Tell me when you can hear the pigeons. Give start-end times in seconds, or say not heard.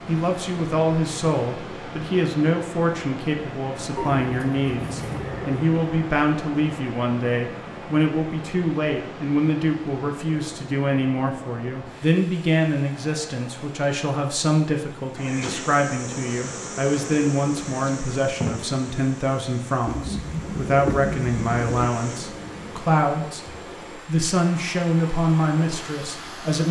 4.0-5.7, 19.9-21.9.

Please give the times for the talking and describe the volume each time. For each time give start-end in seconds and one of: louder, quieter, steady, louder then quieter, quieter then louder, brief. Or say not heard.
0.1-23.4 steady
24.1-26.6 brief.